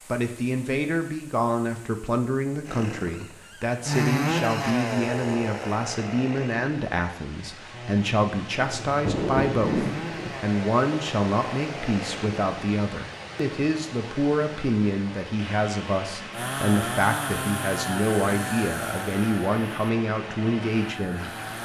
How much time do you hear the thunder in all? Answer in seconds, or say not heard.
2 s.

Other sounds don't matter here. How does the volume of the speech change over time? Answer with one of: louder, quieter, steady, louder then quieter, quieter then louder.
steady.